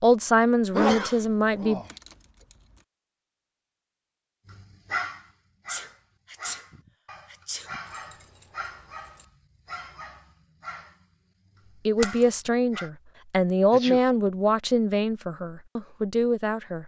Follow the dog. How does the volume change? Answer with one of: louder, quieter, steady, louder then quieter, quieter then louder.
quieter.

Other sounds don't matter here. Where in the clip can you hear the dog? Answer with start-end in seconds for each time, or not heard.
4.5-12.9.